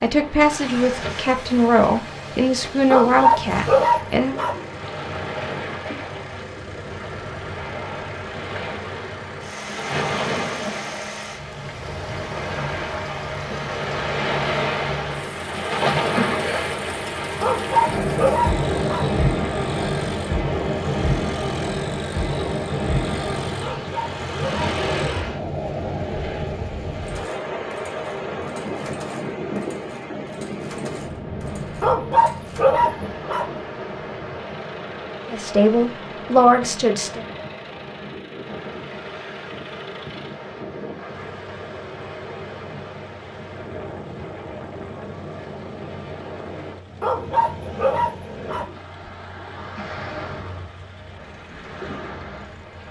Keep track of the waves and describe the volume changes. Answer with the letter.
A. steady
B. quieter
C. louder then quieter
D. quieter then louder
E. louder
C.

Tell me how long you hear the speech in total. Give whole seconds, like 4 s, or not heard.
6 s.